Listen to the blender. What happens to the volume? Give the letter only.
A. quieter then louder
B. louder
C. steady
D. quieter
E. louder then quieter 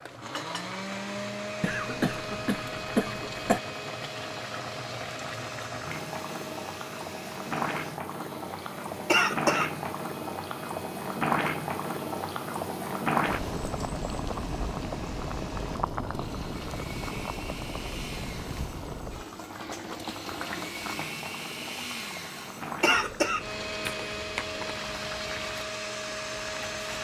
A.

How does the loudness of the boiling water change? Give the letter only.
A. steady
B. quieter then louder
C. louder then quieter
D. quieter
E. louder
C.